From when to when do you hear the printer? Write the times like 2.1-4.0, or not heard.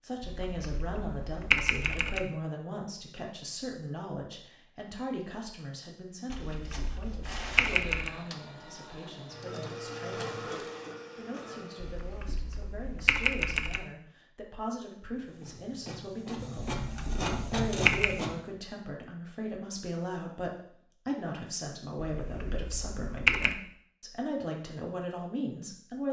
6.2-12.2, 15.1-18.6.